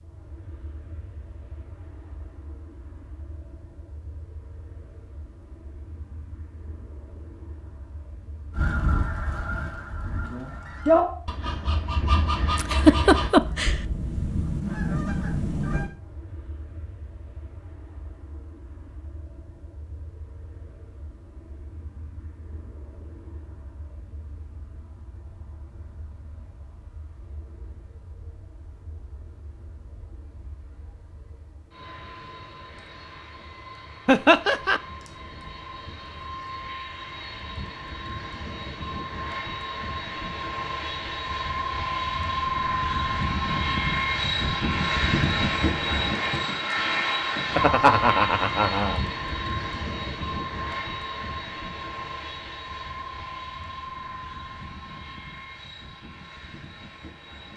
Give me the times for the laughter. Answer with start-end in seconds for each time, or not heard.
12.6-13.8, 34.0-34.8, 47.5-49.0.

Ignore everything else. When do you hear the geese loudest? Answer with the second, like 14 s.
11 s.